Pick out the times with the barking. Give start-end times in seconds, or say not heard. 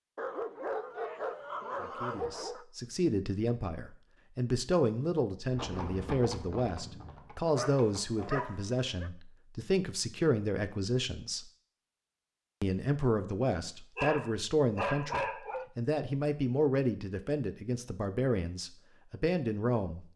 0.1-2.6, 7.5-9.1, 13.7-15.7.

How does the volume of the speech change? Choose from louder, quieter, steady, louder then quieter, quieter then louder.
steady.